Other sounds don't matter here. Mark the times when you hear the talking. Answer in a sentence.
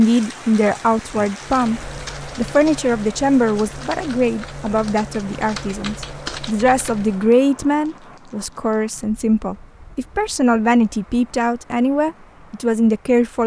The talking can be heard from 0.0 to 13.4 s.